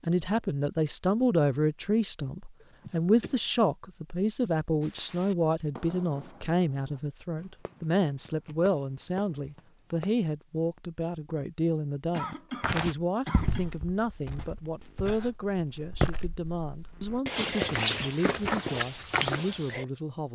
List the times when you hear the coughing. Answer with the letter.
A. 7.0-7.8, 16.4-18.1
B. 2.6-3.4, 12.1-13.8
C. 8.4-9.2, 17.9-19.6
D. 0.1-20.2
B.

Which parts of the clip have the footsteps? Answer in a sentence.
The footsteps can be heard from 12.6 to 19.9 s.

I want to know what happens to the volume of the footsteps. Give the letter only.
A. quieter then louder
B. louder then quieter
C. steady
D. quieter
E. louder
A.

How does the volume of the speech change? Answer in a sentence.
The loudness of the speech goes down.